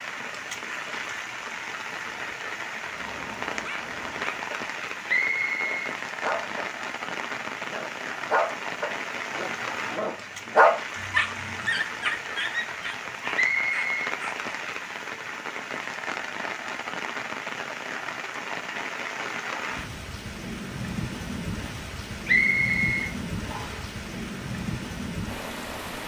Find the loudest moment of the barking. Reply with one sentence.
The volume of the barking peaks at 11 seconds.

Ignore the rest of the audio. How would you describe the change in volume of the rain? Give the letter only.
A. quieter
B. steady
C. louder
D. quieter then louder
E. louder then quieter
B.